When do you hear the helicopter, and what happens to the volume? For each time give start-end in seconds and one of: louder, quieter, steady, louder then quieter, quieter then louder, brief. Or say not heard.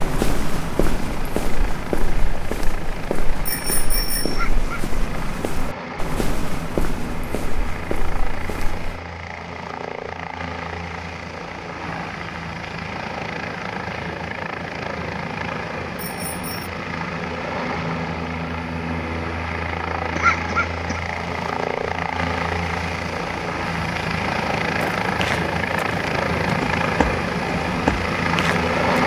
0.0-29.0 louder.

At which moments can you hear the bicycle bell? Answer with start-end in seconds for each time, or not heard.
3.5-4.5, 15.9-16.7.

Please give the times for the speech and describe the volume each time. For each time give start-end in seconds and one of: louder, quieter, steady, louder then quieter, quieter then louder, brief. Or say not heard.
not heard.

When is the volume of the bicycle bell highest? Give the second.
4 s.